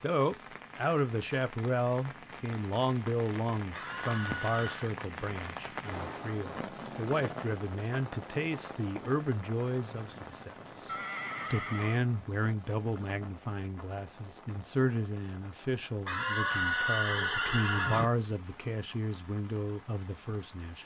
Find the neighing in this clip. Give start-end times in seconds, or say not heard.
3.7-4.9, 10.1-12.1, 16.1-18.1.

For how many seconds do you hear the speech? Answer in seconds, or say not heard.
21 s.